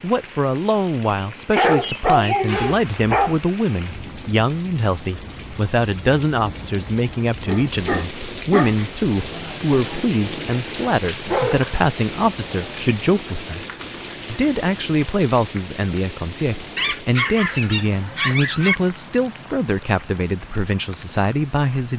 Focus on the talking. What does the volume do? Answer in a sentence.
The loudness of the talking stays about the same.